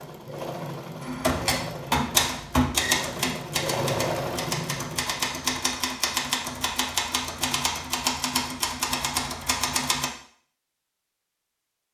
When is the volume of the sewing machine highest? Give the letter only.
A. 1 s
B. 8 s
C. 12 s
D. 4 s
D.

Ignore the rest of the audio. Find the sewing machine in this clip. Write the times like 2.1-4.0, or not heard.
0.0-5.3.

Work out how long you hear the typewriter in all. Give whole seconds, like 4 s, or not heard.
9 s.